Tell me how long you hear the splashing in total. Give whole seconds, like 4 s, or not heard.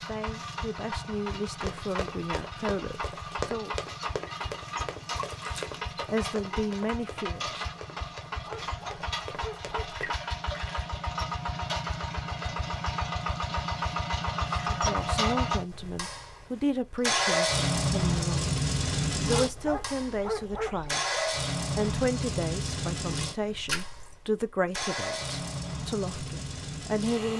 2 s.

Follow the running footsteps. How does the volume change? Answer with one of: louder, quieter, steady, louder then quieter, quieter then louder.
quieter.